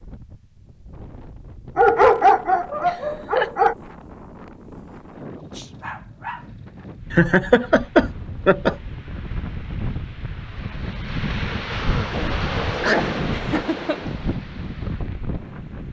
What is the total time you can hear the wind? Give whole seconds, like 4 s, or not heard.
16 s.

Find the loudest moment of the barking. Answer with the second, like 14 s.
2 s.